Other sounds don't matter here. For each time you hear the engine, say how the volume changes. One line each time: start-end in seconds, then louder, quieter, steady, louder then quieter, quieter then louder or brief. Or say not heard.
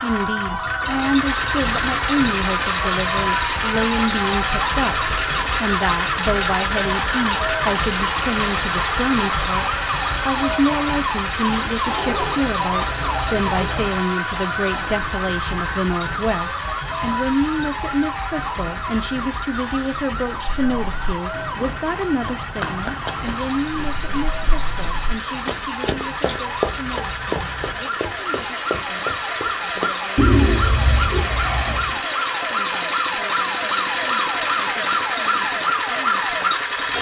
0.0-36.9 quieter then louder.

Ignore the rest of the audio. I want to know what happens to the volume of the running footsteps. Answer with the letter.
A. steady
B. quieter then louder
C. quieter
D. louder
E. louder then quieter
E.